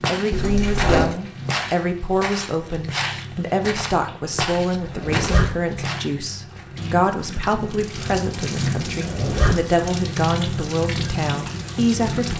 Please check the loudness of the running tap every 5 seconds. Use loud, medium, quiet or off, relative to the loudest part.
medium, loud, loud.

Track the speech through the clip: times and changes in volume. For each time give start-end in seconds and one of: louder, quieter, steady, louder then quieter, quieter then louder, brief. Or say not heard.
0.1-12.3 steady.